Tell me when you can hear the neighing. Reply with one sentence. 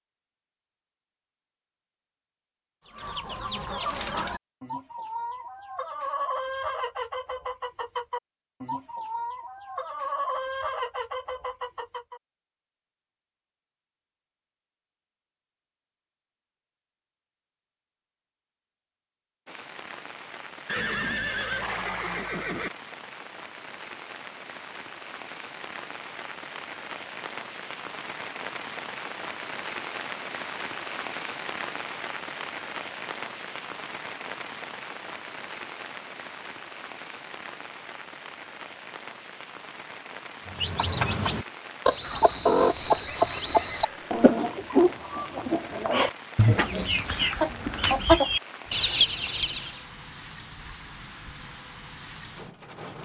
You can hear the neighing from 20.6 to 22.7 s and from 42.9 to 44.2 s.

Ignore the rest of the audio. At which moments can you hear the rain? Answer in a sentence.
The rain can be heard from 19.4 to 53.0 s.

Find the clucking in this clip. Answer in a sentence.
The clucking can be heard from 2.9 to 12.2 s and from 40.5 to 49.8 s.